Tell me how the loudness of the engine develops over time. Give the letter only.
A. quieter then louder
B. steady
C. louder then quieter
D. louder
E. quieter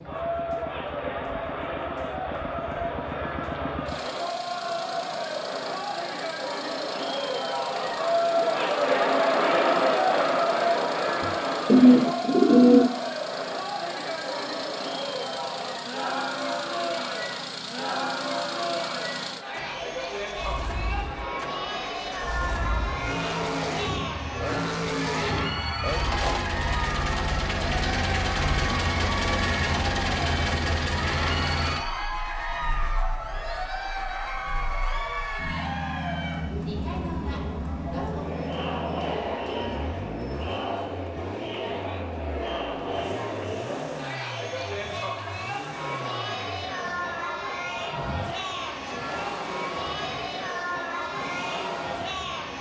C.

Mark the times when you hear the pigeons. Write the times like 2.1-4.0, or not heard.
11.2-12.9.